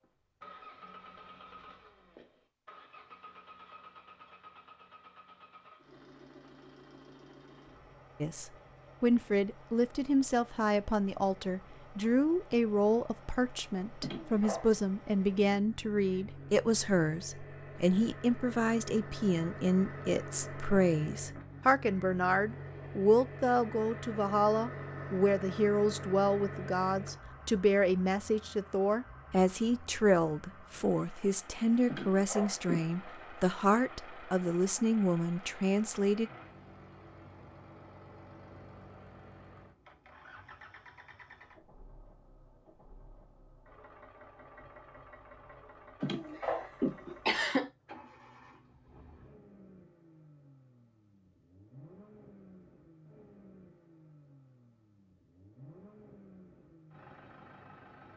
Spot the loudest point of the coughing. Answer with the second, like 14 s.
47 s.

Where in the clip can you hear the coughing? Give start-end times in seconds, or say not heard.
14.0-14.7, 31.9-33.0, 46.0-47.7.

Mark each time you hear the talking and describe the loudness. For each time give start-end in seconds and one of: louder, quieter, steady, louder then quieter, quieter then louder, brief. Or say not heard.
8.2-36.3 steady.